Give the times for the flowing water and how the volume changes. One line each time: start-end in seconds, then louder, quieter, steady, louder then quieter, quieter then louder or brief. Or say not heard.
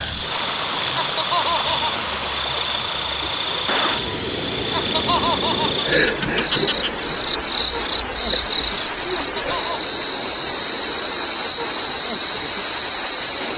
0.0-13.5 steady.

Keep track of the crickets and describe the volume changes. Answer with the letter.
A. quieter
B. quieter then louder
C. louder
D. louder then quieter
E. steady
E.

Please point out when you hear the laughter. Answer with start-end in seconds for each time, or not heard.
1.0-1.9, 4.7-7.0, 9.2-9.8.